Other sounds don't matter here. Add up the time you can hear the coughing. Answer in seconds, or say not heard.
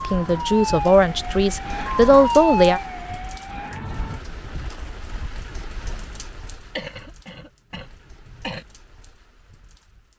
2 s.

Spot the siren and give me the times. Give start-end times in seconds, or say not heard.
0.0-4.2.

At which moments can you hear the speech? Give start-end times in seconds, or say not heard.
0.0-2.8.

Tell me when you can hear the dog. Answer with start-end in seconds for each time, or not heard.
not heard.